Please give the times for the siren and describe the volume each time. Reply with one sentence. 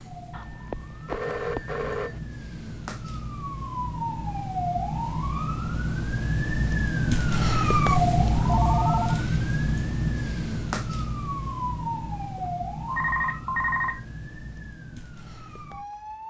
You can hear the siren from 0.0 to 16.2 s, getting louder then quieter.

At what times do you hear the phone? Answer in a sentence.
The phone can be heard from 0.3 to 2.2 s, from 8.4 to 9.2 s and from 12.3 to 14.0 s.